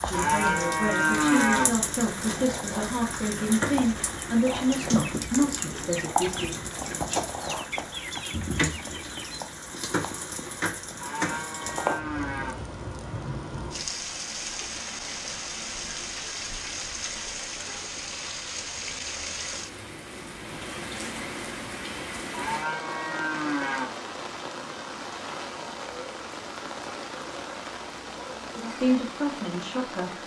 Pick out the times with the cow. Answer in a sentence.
The cow can be heard from 0.1 to 1.6 s, from 11.0 to 12.6 s and from 22.3 to 23.9 s.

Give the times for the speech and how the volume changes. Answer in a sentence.
You can hear the speech from 0.0 to 6.6 s, at a steady volume; and briefly from 28.6 to 30.2 s.